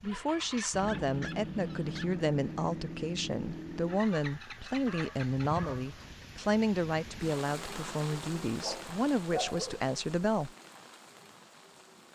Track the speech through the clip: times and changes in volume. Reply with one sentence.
The speech can be heard from 0.0 to 10.5 s, at a steady volume.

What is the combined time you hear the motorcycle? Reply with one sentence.
You can hear the motorcycle for 6 seconds altogether.